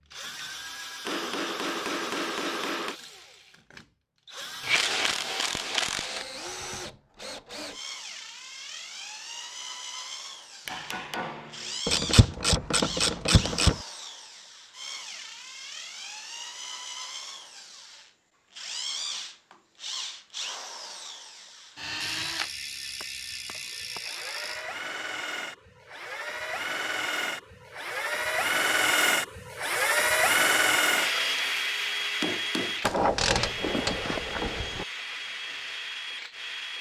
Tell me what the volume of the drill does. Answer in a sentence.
The volume of the drill goes up.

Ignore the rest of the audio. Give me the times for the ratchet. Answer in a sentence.
You can hear the ratchet from 4.6 to 6.2 s, from 11.8 to 13.8 s, from 22.0 to 24.6 s and from 32.8 to 34.9 s.